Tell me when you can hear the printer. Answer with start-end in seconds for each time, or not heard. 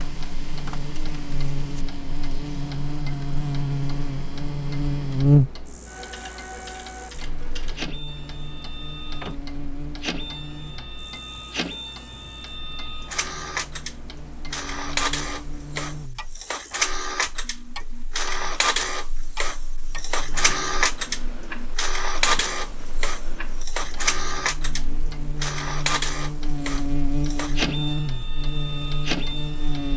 0.0-29.9.